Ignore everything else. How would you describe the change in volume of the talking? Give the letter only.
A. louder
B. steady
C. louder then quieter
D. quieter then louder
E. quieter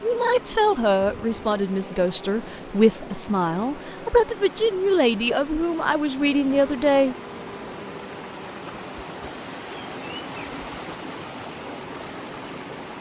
B.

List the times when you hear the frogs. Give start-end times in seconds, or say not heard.
not heard.